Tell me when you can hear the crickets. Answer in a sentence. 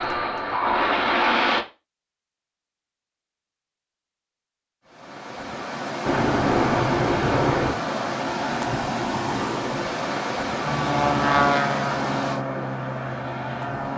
The crickets can't be heard in this clip.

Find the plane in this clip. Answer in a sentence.
The plane can be heard from 0.0 to 1.6 s, from 6.0 to 7.8 s and from 10.6 to 13.9 s.